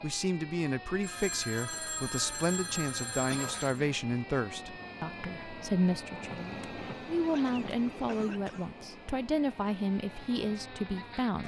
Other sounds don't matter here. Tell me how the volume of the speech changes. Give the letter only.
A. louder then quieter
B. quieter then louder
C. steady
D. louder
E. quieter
C.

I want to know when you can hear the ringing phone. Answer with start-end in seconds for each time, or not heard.
1.0-3.8, 6.3-8.2.